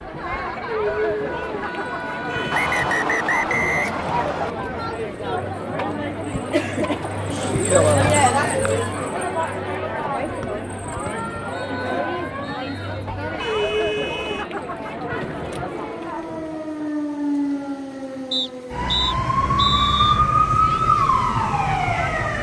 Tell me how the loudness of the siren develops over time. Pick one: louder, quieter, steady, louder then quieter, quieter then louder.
louder.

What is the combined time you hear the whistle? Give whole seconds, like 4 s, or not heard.
7 s.